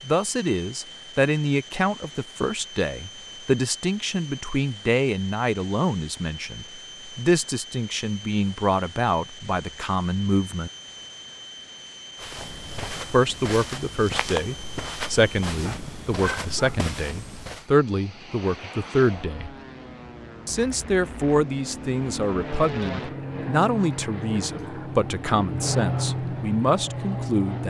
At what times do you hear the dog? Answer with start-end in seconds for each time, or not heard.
15.6-16.9.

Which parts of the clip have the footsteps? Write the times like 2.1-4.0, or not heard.
12.2-17.6.